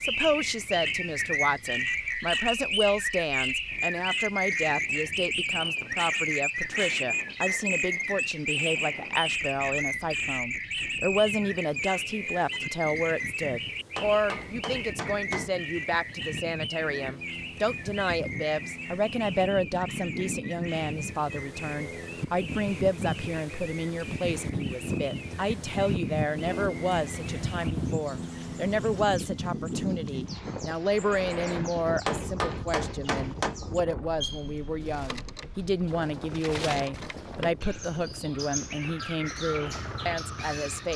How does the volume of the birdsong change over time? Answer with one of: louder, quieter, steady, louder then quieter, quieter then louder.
quieter then louder.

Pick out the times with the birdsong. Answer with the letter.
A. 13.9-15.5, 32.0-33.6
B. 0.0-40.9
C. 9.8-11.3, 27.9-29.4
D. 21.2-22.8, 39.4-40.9
B.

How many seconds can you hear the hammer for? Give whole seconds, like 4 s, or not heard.
3 s.